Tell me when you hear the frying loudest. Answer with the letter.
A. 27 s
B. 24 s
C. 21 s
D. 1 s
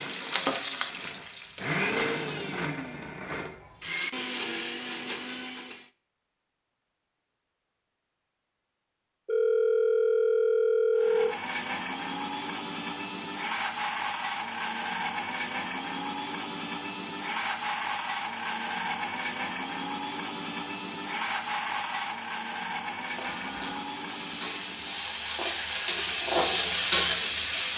A.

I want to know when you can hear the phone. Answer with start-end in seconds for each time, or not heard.
9.2-11.3, 23.2-23.8.